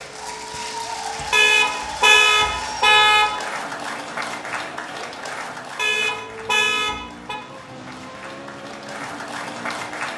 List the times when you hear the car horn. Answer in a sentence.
The car horn can be heard from 1.3 to 3.3 s and from 5.8 to 7.3 s.